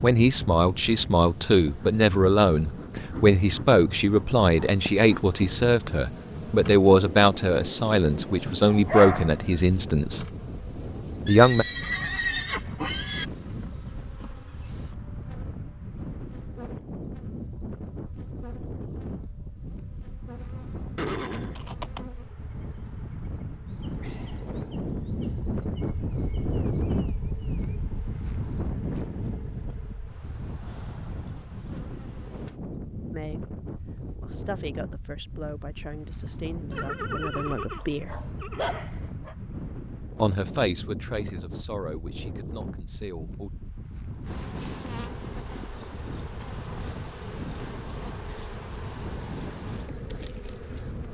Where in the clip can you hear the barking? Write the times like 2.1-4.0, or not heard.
8.7-9.8, 37.8-39.4.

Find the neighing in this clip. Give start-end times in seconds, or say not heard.
11.2-13.2, 20.9-22.1, 36.7-38.9.